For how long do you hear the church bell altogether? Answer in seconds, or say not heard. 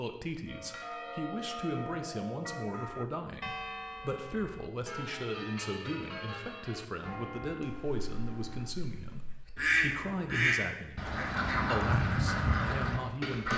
8 s.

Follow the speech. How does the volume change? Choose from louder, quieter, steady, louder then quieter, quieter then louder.
steady.